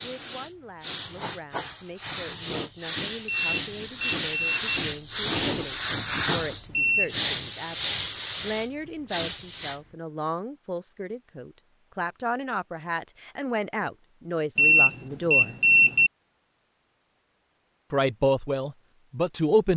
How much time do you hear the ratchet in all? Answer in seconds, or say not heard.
not heard.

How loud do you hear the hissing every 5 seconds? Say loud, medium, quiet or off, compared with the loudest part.
loud, loud, off, off.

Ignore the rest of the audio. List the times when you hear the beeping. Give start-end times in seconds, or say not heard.
3.2-4.8, 6.7-7.2, 14.6-16.1.